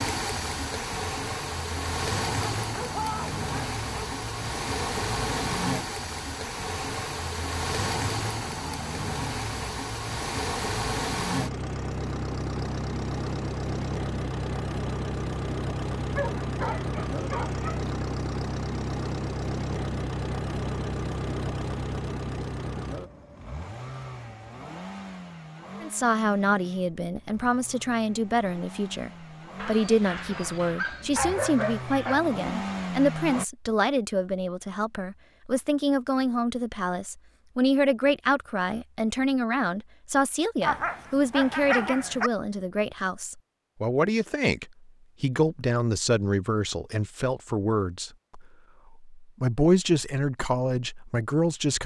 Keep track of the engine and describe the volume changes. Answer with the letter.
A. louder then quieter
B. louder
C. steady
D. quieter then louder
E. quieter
E.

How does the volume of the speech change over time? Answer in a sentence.
The loudness of the speech stays about the same.